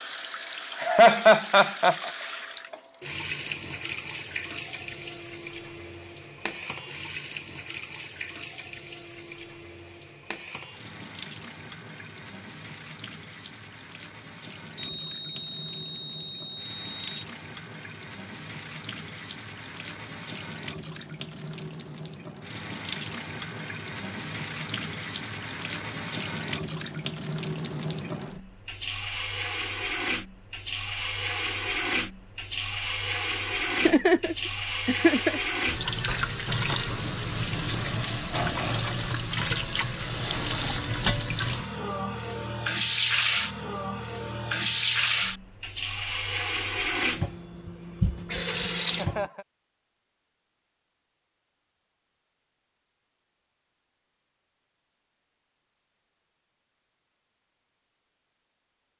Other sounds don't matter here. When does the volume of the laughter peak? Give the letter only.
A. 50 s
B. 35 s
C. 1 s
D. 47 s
C.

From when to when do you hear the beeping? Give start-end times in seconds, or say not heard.
14.8-17.2.